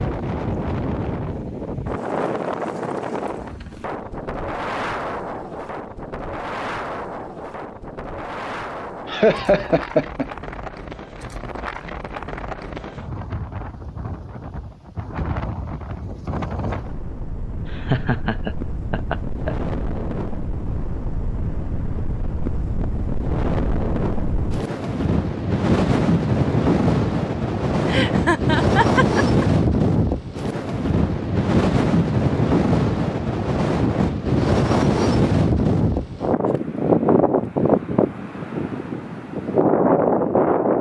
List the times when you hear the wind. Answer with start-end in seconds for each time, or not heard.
0.0-40.7.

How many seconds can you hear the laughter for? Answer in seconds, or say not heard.
5 s.